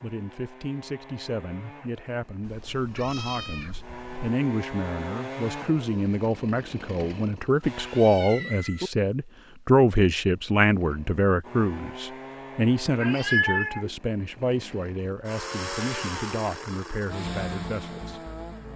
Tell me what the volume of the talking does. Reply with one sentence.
The loudness of the talking goes up, then down.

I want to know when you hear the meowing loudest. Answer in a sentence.
The loudest moment of the meowing is at 13 seconds.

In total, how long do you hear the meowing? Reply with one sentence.
You can hear the meowing for 4 seconds altogether.